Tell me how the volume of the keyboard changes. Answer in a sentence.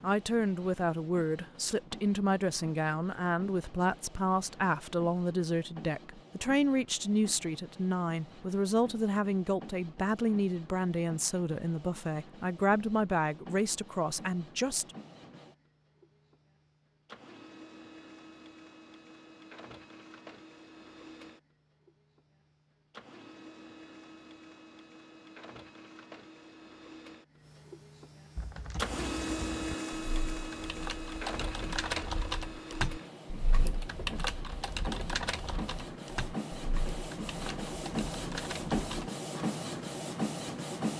The loudness of the keyboard goes up, then down.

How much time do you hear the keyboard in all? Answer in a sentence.
You can hear the keyboard for 11 seconds altogether.